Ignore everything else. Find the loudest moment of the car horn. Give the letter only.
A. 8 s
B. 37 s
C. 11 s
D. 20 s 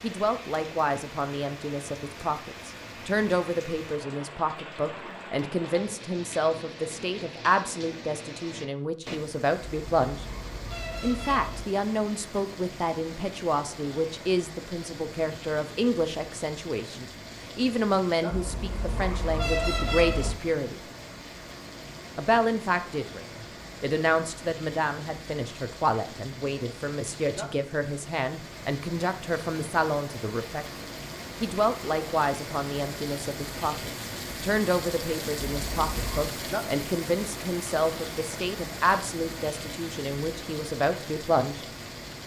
D.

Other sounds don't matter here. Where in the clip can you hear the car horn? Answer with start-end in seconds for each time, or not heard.
9.7-11.7, 18.3-20.3, 35.5-36.2.